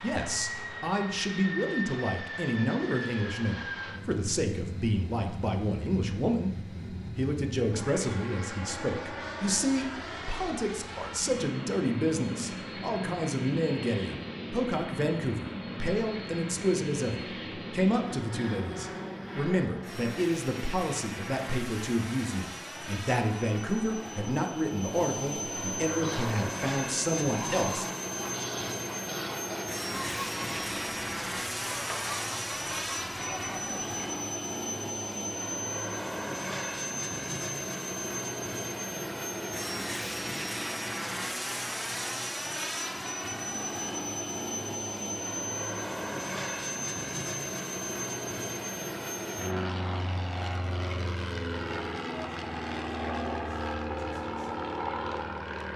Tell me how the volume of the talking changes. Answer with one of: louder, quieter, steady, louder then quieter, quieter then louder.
steady.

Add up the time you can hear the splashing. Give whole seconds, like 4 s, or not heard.
not heard.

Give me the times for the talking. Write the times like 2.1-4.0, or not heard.
0.0-27.9.